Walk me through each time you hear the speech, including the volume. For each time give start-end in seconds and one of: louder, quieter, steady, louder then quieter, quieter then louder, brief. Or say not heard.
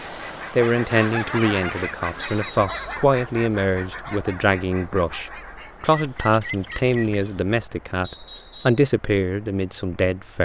0.5-10.4 steady.